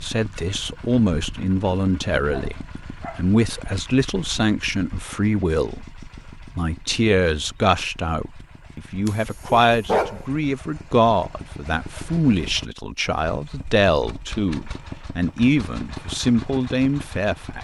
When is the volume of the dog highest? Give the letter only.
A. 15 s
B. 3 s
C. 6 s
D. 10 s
D.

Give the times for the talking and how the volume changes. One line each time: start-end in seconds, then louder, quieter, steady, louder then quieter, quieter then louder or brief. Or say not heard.
0.0-17.5 steady.